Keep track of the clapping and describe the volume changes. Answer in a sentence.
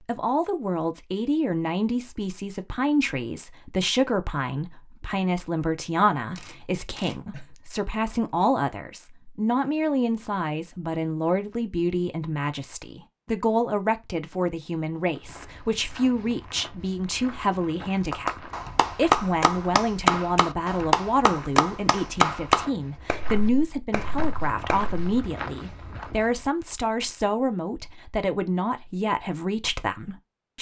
The volume of the clapping goes down.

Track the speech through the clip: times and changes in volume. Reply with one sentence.
You can hear the speech from 0.1 to 30.5 s, at a steady volume.